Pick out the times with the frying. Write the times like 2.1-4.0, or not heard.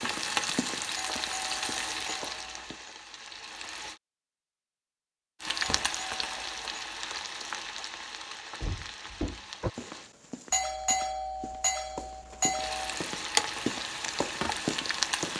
0.0-4.0, 5.4-10.1, 12.6-15.3.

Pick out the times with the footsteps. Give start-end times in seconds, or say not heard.
0.0-2.9, 9.8-15.3.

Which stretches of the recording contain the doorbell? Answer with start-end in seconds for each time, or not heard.
0.9-2.9, 5.6-6.7, 10.5-13.0.